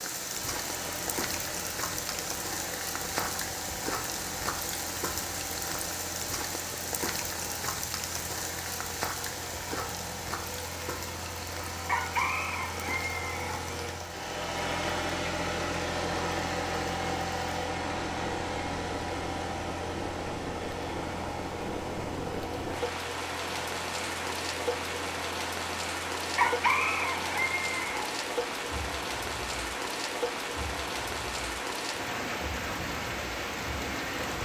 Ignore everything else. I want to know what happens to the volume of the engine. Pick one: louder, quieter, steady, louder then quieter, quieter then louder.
louder then quieter.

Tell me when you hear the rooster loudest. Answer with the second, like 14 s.
27 s.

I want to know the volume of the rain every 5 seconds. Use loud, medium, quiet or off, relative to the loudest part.
loud, loud, medium, medium, loud, loud, loud.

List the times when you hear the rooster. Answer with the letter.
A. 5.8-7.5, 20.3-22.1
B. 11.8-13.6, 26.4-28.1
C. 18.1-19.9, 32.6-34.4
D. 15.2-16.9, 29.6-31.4
B.